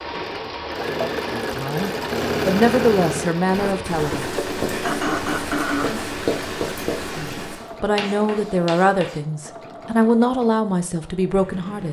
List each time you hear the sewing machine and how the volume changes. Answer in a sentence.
The sewing machine can be heard from 0.0 to 11.8 s, getting quieter.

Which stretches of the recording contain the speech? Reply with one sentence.
The speech can be heard from 1.3 to 4.3 s and from 7.2 to 11.8 s.